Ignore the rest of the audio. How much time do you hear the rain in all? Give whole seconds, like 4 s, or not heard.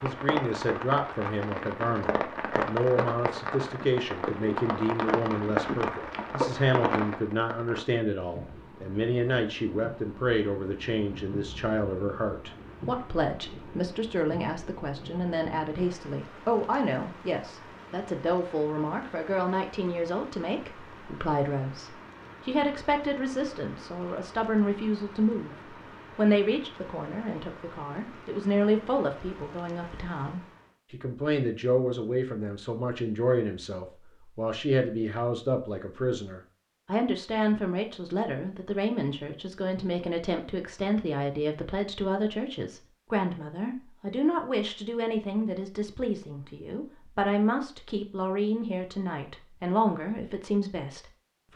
31 s.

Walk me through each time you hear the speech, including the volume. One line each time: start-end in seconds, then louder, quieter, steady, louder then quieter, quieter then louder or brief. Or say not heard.
0.0-25.6 steady
26.1-51.5 steady.